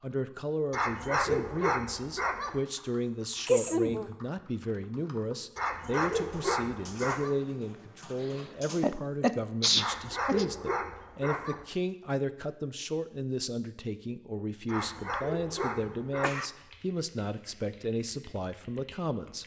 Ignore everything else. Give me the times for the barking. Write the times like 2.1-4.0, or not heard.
0.7-2.6, 5.5-7.3, 9.8-11.7, 14.7-16.4.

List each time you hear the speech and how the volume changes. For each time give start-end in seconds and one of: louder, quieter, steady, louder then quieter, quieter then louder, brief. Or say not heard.
0.0-19.4 steady.